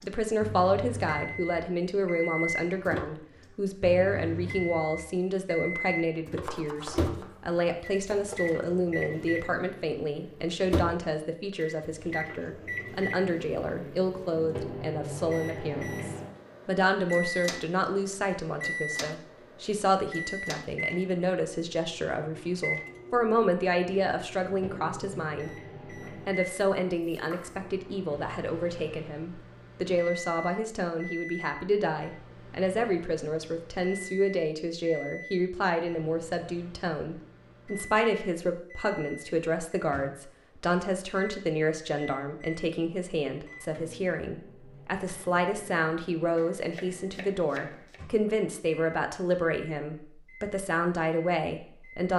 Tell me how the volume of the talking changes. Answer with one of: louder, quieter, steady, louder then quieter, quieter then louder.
steady.